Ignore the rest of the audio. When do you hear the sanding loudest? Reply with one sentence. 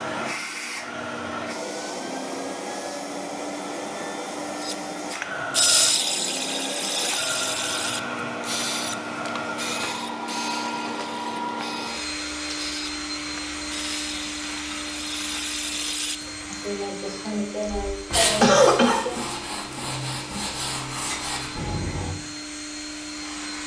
The loudest moment of the sanding is at 18 seconds.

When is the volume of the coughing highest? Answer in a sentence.
The volume of the coughing peaks at 19 seconds.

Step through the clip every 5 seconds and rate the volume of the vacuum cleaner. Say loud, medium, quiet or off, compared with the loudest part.
loud, loud, loud, medium, medium.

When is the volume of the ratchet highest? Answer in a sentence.
The loudest moment of the ratchet is at 6 seconds.